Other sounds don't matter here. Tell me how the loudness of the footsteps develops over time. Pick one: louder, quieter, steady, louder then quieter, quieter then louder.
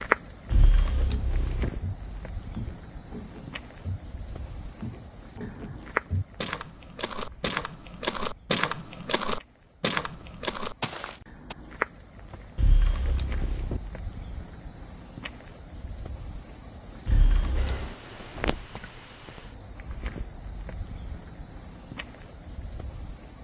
louder.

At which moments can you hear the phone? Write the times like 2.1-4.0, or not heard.
0.5-1.7, 12.6-13.8, 17.1-17.9.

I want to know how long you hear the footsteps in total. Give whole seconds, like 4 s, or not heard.
11 s.